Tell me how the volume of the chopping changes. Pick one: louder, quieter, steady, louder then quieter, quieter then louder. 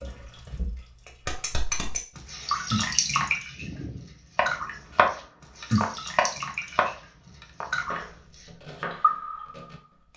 quieter.